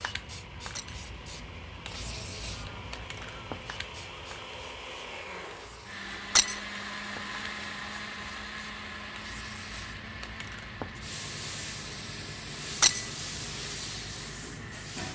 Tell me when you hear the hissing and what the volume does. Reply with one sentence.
The hissing can be heard from 0.0 to 15.1 s, getting quieter then louder.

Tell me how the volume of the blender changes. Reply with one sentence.
The loudness of the blender goes up, then down.